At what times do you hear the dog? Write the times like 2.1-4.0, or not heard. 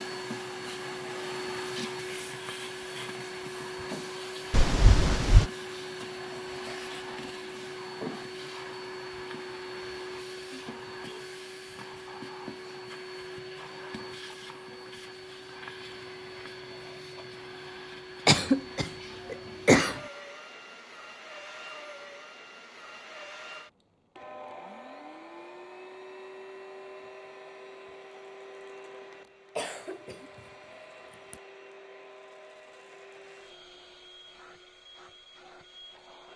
not heard.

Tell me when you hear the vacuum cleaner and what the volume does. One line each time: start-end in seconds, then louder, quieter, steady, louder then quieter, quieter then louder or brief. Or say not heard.
0.0-36.3 quieter.